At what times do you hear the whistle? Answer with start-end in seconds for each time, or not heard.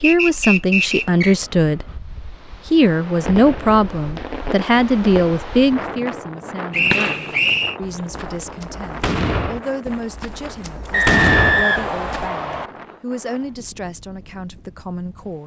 0.0-1.4, 6.7-7.8, 10.9-12.7.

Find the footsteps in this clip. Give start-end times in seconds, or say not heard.
not heard.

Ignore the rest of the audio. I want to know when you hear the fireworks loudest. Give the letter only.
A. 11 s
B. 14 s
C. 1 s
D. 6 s
A.